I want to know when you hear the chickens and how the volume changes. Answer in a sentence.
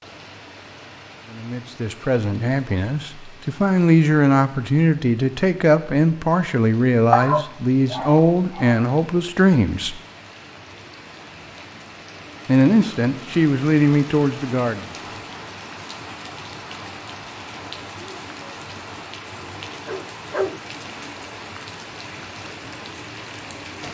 You can't hear the chickens here.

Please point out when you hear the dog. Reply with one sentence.
The dog can be heard from 7.1 to 8.8 s and from 19.9 to 20.6 s.